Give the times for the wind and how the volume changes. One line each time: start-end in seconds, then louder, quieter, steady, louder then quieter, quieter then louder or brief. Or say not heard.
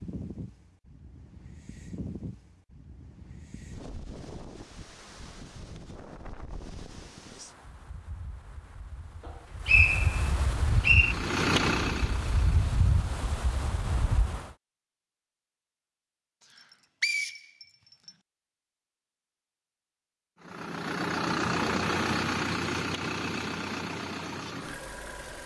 0.0-14.5 louder.